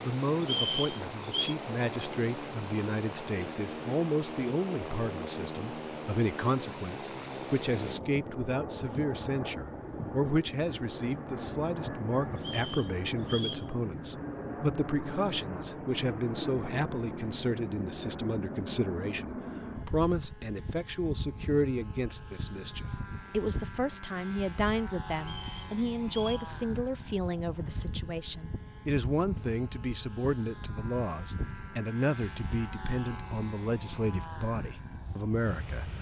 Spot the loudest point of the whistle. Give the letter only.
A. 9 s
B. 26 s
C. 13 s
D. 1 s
D.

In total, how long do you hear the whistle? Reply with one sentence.
You can hear the whistle for 4 seconds altogether.